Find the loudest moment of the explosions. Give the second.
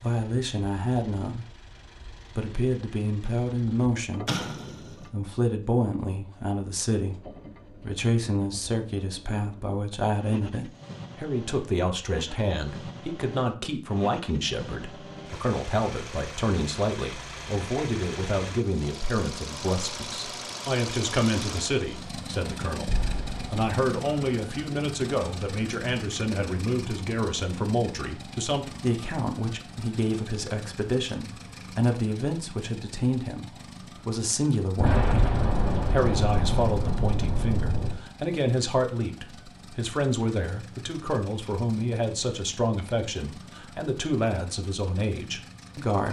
35 s.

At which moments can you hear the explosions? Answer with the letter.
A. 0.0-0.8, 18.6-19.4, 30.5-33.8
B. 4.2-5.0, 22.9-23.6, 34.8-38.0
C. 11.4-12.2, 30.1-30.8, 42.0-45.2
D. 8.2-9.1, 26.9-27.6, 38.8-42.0
B.